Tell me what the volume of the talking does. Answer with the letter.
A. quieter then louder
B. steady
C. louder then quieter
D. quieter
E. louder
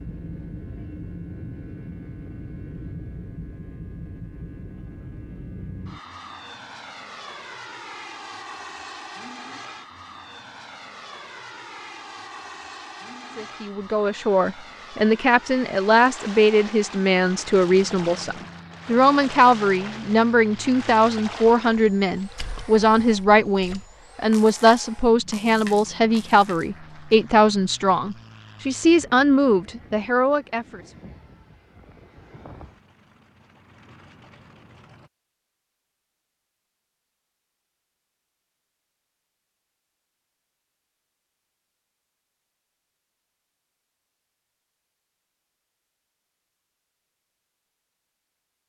B.